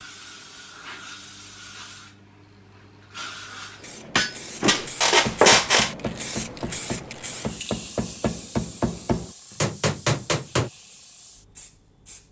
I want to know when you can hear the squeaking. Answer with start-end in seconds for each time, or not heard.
4.6-6.0.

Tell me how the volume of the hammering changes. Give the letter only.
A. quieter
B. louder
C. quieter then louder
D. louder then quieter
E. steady
B.